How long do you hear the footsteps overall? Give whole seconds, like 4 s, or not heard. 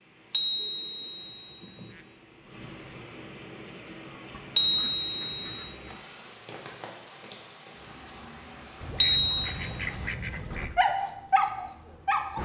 not heard.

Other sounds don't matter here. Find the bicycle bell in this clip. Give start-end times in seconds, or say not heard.
0.3-1.9, 4.5-5.7, 9.0-9.4.